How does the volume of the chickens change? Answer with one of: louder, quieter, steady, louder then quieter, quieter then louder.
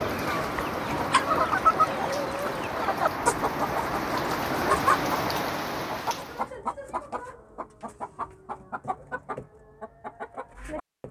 quieter.